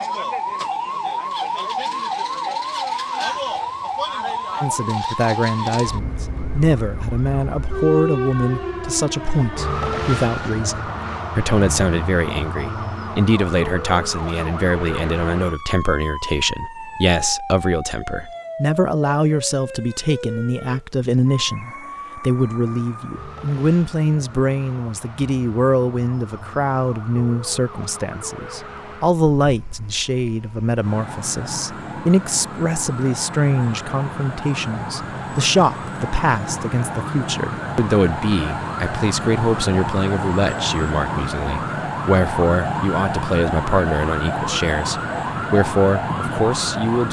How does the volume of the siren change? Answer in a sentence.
The volume of the siren goes down, then up.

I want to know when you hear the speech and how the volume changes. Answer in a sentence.
The speech can be heard from 4.6 to 47.0 s, at a steady volume.